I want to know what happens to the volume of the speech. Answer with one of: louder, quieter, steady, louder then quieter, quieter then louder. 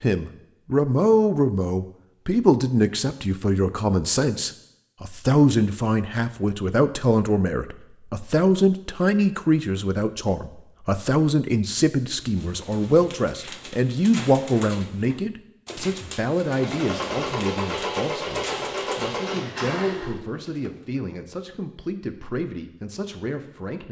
quieter.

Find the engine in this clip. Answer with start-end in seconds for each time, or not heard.
16.4-20.1.